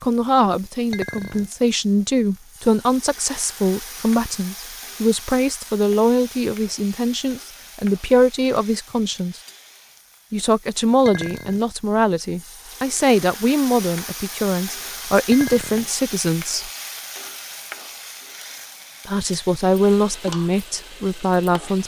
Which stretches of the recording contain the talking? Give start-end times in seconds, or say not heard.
0.0-9.4, 10.3-16.7, 19.1-21.8.